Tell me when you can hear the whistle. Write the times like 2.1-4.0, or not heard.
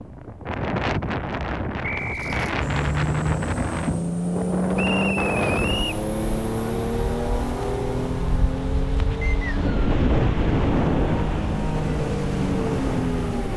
1.8-2.3, 4.8-6.0, 9.2-9.9.